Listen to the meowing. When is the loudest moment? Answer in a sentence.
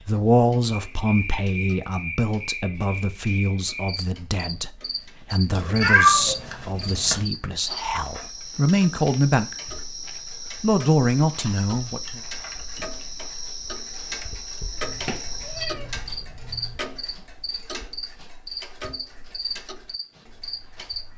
The volume of the meowing peaks at 6 seconds.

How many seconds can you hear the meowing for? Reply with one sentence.
You can hear the meowing for 4 seconds altogether.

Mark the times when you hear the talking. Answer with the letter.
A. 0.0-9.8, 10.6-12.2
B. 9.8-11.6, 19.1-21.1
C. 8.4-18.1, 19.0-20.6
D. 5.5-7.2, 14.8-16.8
A.